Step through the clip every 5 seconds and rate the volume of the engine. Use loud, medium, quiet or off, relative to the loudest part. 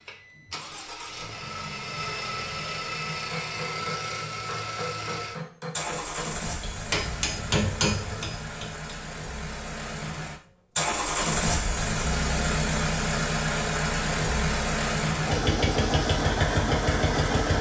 medium, medium, loud, loud.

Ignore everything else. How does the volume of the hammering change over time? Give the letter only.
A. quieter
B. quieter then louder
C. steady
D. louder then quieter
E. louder
E.